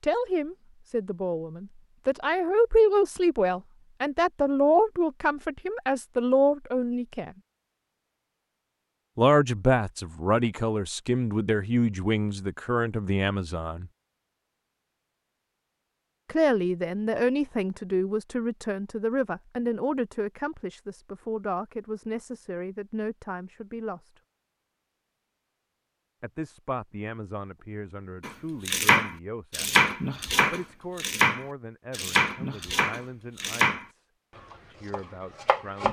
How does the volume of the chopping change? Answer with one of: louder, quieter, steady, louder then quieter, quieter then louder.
quieter.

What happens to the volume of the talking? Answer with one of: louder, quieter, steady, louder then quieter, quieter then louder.
quieter.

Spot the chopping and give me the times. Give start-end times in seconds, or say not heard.
28.2-35.8.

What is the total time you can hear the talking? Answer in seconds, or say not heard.
29 s.